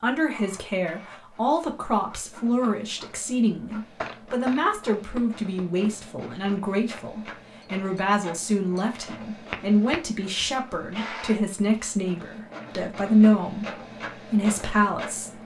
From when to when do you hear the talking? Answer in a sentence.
The talking can be heard from 0.0 to 15.4 s.